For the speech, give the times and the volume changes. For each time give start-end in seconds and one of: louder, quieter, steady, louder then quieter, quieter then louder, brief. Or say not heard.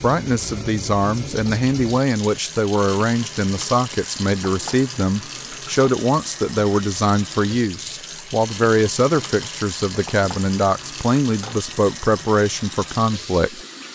0.0-13.6 steady.